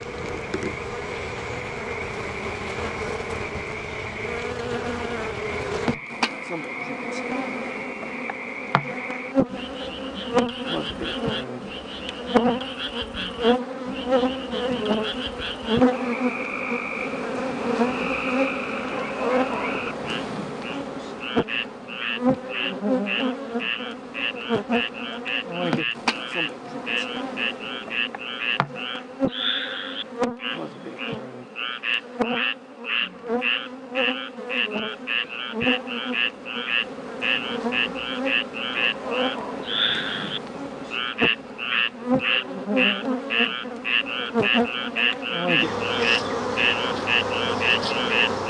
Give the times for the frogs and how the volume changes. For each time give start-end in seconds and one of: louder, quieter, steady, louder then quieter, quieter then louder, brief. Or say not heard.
0.0-48.4 louder.